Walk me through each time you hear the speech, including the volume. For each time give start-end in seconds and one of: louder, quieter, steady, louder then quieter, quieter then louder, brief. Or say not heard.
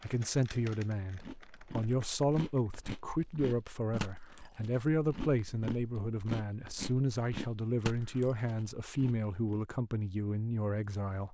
0.0-11.2 steady.